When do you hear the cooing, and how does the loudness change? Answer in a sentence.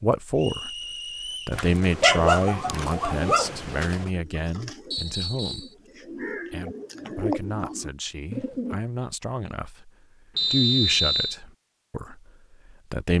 The cooing can be heard from 2.8 to 8.8 s, getting louder.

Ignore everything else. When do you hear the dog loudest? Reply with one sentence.
The volume of the dog peaks at 2 seconds.